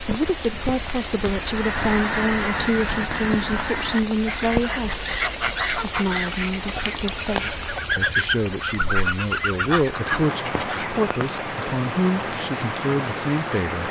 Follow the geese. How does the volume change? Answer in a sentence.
The loudness of the geese stays about the same.